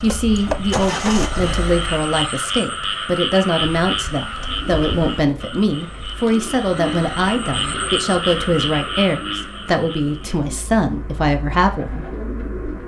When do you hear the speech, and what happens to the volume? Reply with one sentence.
The speech can be heard from 0.0 to 12.1 s, at a steady volume.